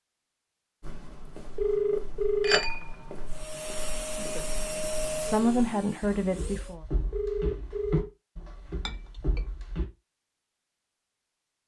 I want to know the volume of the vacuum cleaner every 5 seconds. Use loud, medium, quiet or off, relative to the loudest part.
loud, loud, off.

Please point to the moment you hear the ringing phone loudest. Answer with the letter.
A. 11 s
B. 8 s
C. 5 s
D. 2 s
D.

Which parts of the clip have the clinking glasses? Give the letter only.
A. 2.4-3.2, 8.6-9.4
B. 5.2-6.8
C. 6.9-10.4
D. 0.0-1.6
A.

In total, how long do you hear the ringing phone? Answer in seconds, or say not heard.
2 s.